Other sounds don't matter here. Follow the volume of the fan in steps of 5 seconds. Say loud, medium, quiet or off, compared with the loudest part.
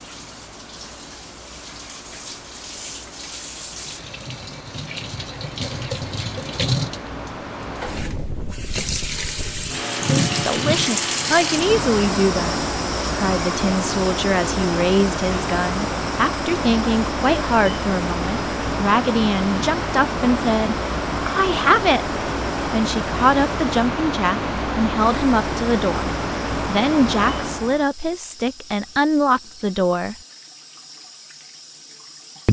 quiet, medium, loud, loud, loud, loud, off.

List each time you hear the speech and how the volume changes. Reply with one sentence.
The speech can be heard from 10.2 to 30.1 s, at a steady volume.